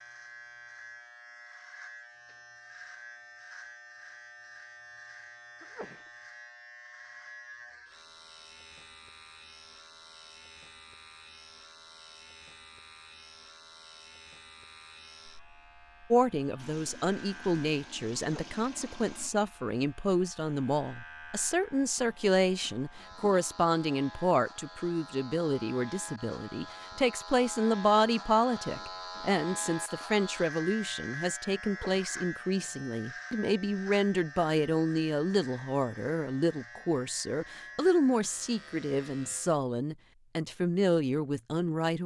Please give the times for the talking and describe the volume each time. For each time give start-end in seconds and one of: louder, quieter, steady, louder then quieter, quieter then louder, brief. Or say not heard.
16.1-42.0 steady.